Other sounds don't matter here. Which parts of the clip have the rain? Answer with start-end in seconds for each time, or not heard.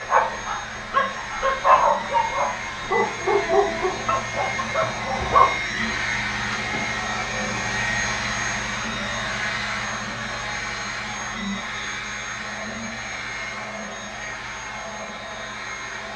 not heard.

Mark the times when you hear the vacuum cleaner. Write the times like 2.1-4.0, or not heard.
0.0-16.1.